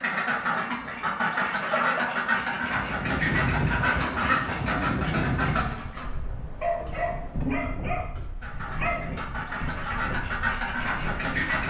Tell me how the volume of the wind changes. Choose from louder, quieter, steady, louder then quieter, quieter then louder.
quieter.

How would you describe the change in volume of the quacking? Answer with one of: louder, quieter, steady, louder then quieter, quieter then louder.
quieter then louder.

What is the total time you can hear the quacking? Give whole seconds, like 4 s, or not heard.
9 s.